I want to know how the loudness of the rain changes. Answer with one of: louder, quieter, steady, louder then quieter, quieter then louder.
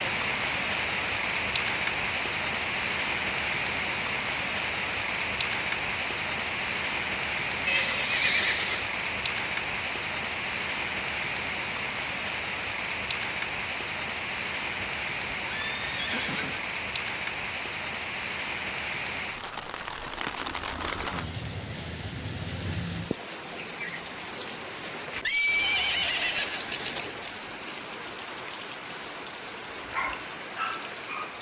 quieter.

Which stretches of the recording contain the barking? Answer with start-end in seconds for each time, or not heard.
29.9-31.3.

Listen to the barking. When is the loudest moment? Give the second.
30 s.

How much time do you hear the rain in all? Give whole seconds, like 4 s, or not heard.
31 s.